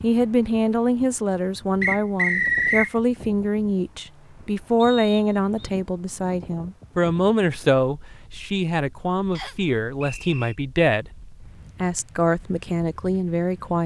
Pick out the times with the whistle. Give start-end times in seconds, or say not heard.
1.8-3.0, 4.8-5.7, 9.3-10.6.